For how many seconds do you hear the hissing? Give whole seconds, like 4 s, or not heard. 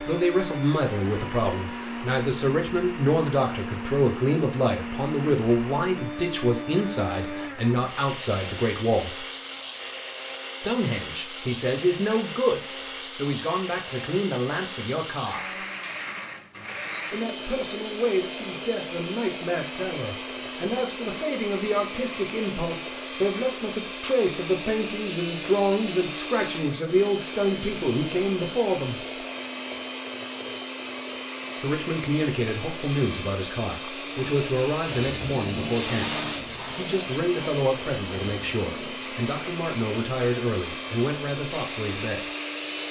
9 s.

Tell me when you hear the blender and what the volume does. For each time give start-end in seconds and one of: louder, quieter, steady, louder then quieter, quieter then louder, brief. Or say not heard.
0.0-42.8 steady.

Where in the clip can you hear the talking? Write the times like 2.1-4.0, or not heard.
0.0-9.2, 10.6-15.7, 17.1-29.1, 31.6-36.1, 36.8-42.3.